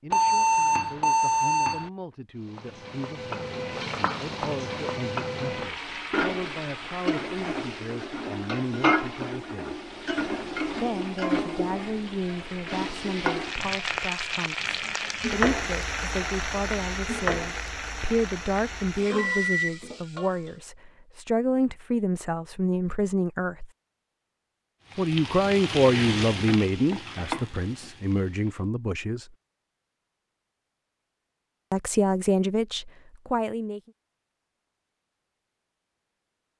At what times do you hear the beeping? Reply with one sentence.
The beeping can be heard from 0.1 to 1.9 s and from 19.1 to 19.8 s.